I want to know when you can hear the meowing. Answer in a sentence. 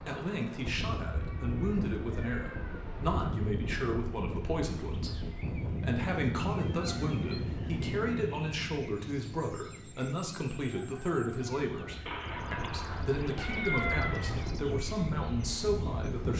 You can hear the meowing from 1.1 to 3.0 s, from 6.5 to 8.0 s and from 12.1 to 14.6 s.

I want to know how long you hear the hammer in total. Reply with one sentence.
You can't hear the hammer here.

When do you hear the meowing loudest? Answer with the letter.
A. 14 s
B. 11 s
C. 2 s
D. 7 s
A.